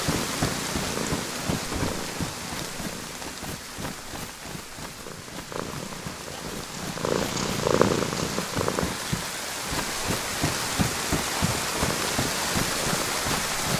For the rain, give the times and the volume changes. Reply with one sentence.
You can hear the rain from 0.0 to 13.7 s, getting quieter then louder.